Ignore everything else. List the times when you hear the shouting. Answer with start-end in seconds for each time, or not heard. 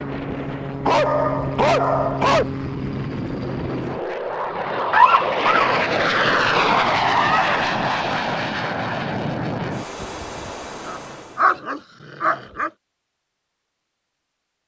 not heard.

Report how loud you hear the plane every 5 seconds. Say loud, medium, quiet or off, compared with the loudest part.
medium, loud, quiet.